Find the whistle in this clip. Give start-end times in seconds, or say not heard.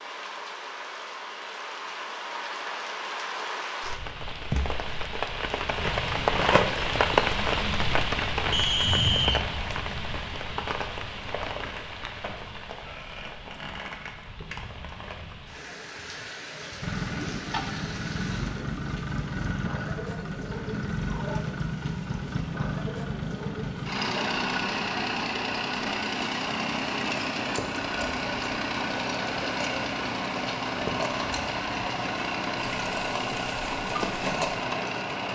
8.5-9.4.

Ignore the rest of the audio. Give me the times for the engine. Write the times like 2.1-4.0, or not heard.
16.8-35.3.